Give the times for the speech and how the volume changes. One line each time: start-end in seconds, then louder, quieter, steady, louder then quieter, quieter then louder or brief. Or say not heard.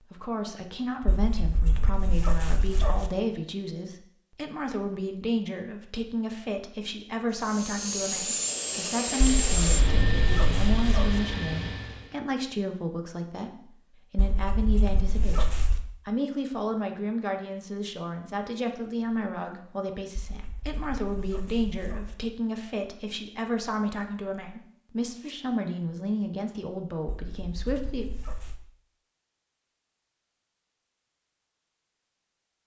0.1-28.1 steady.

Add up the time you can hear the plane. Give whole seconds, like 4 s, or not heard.
5 s.